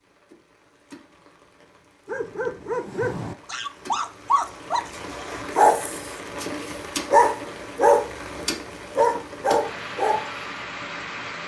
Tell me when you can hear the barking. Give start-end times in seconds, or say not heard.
2.0-8.1, 8.9-10.3.